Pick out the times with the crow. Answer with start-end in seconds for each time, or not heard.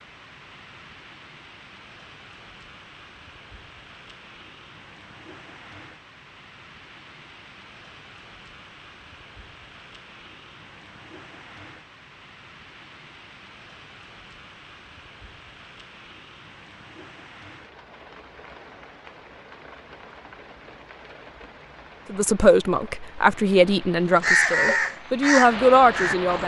24.2-26.4.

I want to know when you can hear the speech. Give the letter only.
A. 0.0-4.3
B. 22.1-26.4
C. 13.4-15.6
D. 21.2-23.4
B.